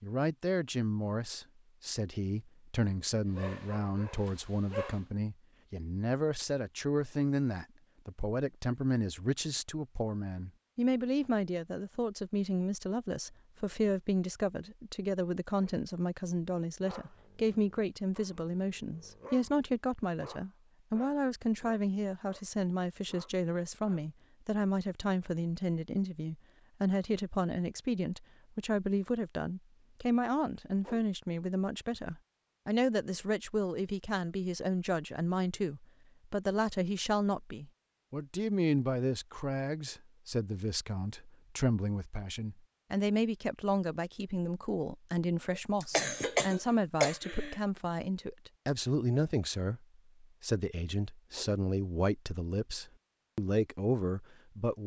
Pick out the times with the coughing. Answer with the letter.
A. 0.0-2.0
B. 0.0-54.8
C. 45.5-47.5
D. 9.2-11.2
C.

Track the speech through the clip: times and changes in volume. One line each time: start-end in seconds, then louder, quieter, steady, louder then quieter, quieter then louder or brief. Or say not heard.
0.0-54.8 steady.